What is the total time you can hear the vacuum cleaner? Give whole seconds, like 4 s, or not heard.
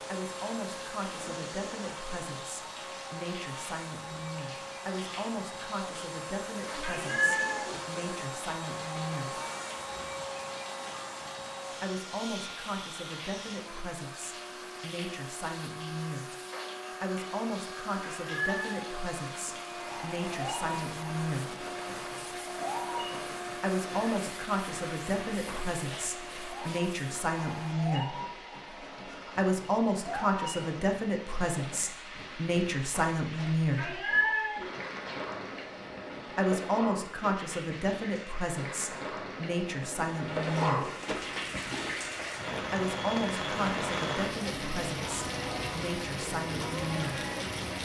28 s.